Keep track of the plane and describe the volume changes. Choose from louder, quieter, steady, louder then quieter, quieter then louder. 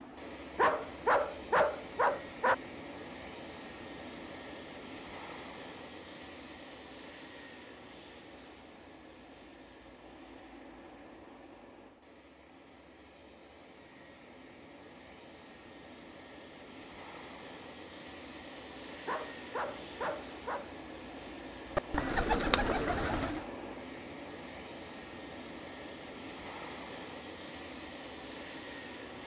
quieter then louder.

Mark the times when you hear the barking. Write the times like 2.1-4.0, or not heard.
0.6-2.5, 19.1-20.7.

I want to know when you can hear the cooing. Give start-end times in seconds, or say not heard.
21.8-23.4.